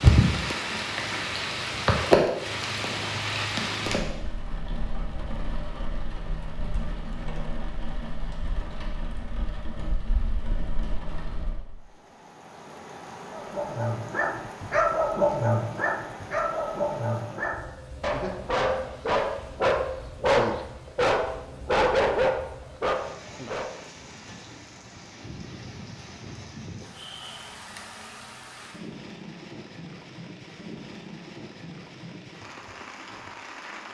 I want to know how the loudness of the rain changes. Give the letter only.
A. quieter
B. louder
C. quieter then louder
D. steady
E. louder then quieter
A.